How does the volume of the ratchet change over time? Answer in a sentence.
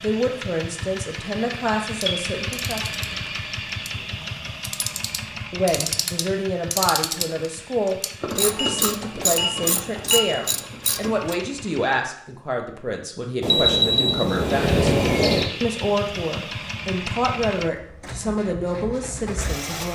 The loudness of the ratchet goes up.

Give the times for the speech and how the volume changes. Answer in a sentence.
The speech can be heard briefly from 0.0 to 2.9 s; and from 5.5 to 19.8 s, at a steady volume.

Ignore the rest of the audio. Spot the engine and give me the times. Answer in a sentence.
You can hear the engine from 0.0 to 12.1 s and from 14.4 to 19.8 s.